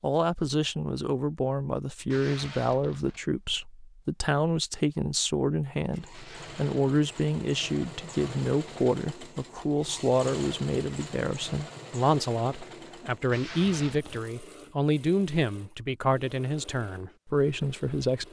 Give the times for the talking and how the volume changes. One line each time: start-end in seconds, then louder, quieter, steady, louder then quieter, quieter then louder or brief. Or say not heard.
0.0-18.2 steady.